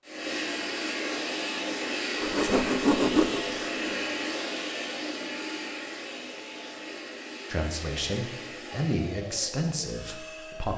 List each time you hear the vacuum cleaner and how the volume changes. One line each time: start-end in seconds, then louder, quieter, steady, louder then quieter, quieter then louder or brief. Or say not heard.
0.0-10.7 quieter.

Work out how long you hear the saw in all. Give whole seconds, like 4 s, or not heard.
2 s.